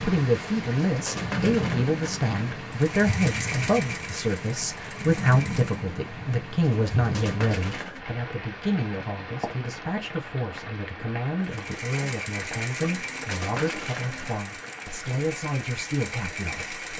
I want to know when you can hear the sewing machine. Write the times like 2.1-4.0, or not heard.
2.7-5.8, 11.4-16.9.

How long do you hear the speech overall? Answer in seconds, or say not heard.
17 s.